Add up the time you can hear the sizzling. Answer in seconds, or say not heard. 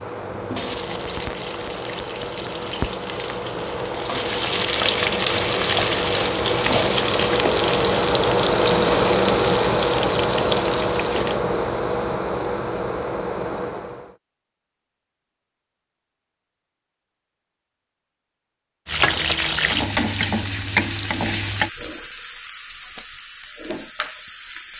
17 s.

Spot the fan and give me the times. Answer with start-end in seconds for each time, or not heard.
0.0-14.2.